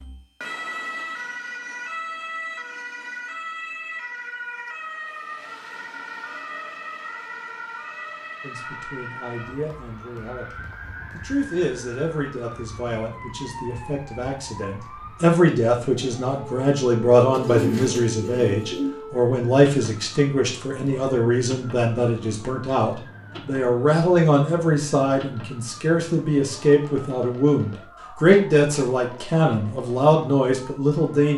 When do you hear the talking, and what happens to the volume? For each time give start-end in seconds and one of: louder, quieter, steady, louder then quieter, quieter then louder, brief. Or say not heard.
8.4-31.3 louder.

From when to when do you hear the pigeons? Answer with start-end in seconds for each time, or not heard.
17.3-18.9.